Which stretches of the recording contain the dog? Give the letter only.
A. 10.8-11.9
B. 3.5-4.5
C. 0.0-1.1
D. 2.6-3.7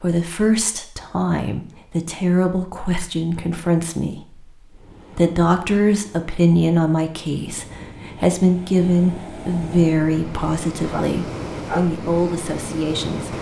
A.